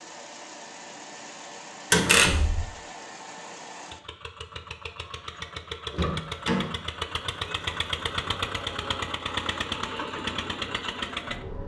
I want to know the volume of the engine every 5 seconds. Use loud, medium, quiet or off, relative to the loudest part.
medium, loud, loud.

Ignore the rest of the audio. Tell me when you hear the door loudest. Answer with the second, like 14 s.
2 s.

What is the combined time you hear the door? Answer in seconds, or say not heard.
2 s.